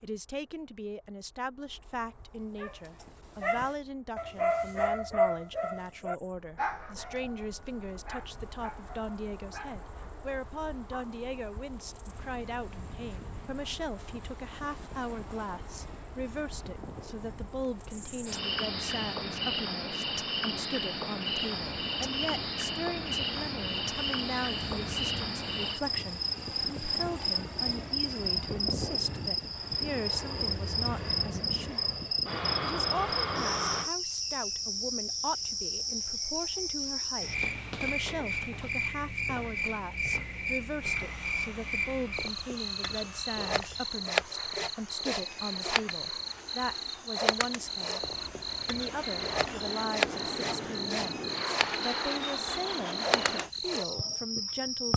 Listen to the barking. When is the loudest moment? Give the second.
5 s.